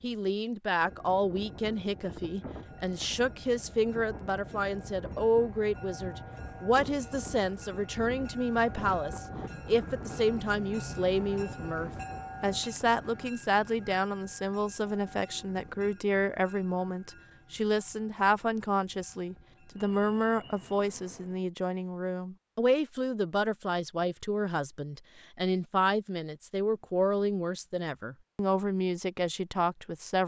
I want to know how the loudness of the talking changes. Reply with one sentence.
The volume of the talking stays about the same.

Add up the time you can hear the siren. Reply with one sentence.
The siren can't be heard in this clip.